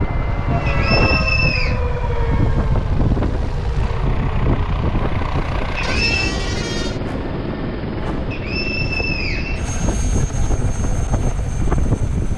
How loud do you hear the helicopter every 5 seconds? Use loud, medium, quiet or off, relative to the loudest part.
medium, loud, medium.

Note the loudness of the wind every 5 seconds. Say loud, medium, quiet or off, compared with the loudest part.
loud, medium, loud.